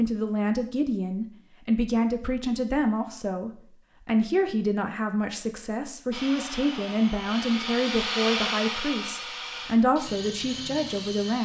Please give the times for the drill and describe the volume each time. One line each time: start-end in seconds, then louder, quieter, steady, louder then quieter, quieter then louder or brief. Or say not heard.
6.1-11.4 louder then quieter.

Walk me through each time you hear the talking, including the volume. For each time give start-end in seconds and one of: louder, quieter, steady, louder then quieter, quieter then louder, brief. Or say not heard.
0.0-11.4 steady.